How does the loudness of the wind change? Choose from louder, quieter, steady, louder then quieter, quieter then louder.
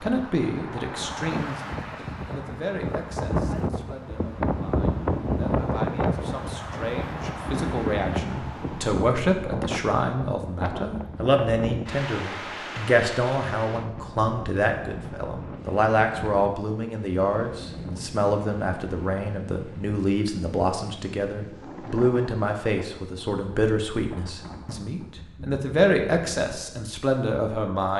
quieter.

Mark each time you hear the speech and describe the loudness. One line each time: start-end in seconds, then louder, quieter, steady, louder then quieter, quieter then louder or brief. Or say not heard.
0.0-27.9 louder.